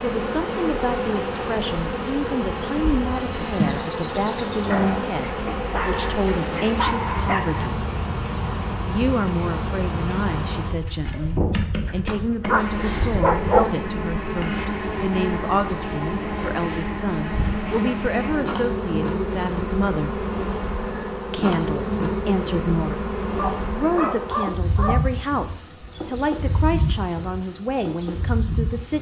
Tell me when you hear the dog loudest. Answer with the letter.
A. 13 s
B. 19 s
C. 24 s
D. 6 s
A.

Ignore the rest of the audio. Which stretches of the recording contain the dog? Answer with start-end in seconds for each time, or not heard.
5.2-7.7, 11.6-13.8, 23.4-25.2.